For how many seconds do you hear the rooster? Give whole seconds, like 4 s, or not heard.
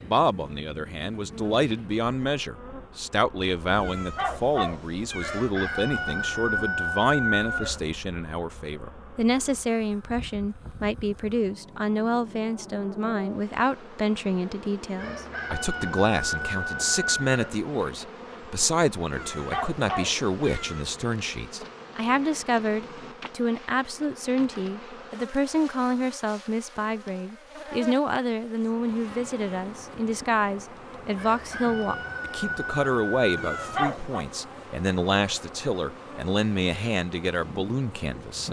8 s.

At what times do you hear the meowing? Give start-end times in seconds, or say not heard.
3.8-5.5, 19.1-20.9, 33.4-34.2.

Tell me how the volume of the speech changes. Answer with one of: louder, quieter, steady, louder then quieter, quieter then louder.
steady.